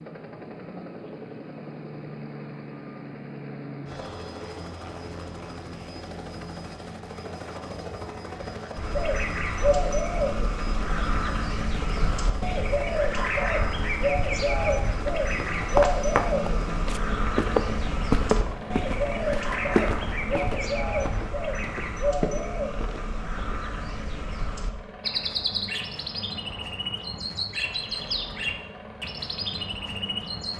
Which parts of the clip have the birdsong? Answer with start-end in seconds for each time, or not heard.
8.8-30.5.